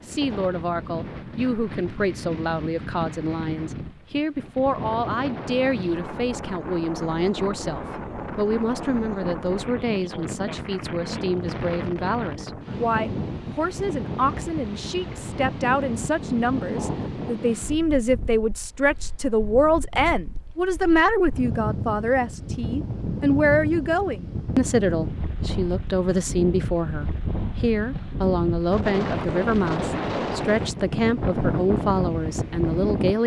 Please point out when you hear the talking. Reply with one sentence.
The talking can be heard from 0.0 to 33.2 s.